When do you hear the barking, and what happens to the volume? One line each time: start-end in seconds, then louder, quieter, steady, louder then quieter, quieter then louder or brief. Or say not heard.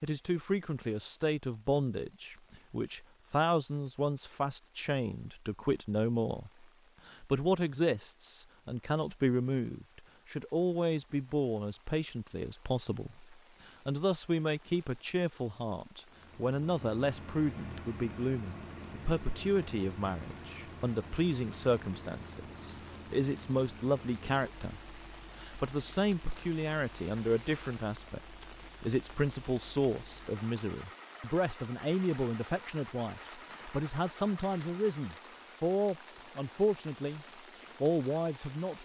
not heard.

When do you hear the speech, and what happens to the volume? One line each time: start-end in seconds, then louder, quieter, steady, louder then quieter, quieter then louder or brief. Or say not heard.
0.0-38.8 steady.